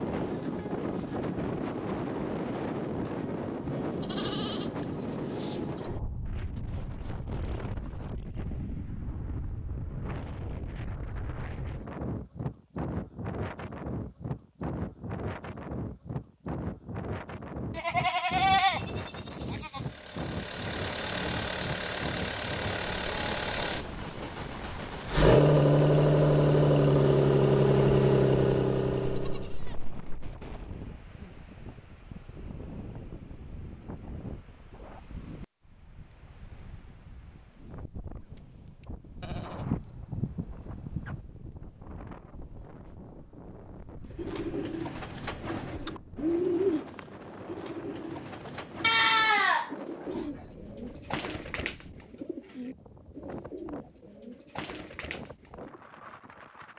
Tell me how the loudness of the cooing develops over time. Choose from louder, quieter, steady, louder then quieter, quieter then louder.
quieter.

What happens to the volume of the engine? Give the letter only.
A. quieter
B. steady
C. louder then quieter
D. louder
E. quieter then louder
D.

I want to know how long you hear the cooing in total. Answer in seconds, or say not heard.
12 s.